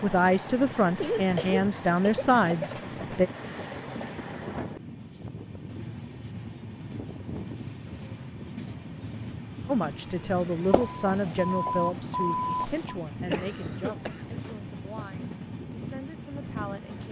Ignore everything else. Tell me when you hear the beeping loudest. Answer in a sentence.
The loudest moment of the beeping is at 12 seconds.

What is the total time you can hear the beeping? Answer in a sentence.
You can hear the beeping for 2 seconds altogether.